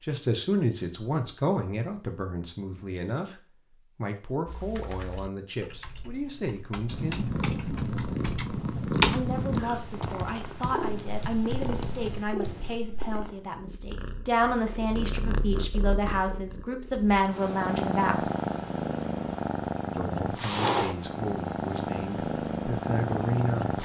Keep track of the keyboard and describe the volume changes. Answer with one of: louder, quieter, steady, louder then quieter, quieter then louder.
louder then quieter.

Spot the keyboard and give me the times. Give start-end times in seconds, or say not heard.
4.5-12.8.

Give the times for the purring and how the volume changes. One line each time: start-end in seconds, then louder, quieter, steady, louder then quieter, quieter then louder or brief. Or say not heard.
6.8-23.8 quieter then louder.